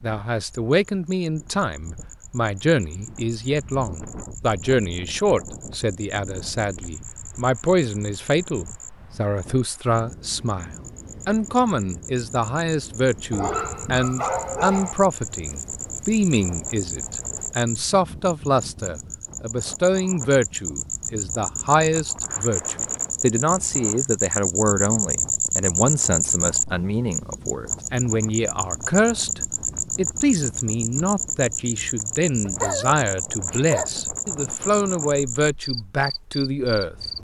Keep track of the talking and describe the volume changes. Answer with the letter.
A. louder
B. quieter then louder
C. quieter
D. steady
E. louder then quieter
D.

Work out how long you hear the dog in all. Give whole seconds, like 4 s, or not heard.
3 s.